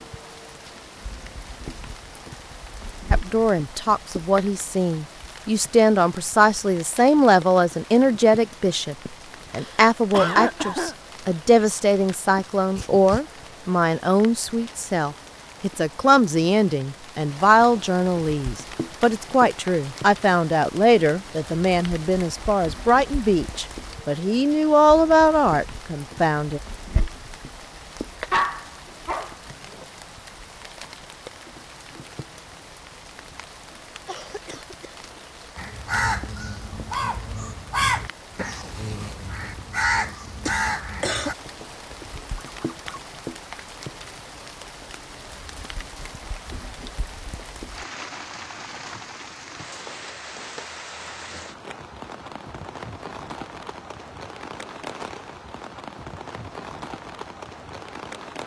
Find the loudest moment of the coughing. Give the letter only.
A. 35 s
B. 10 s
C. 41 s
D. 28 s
B.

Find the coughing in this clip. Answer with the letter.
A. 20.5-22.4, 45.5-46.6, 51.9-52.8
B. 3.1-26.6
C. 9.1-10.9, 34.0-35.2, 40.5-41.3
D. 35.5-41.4
C.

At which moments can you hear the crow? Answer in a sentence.
You can hear the crow from 35.5 to 41.4 s.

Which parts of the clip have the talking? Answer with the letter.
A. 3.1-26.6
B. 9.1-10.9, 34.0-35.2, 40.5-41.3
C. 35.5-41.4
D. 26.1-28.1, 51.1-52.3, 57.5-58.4
A.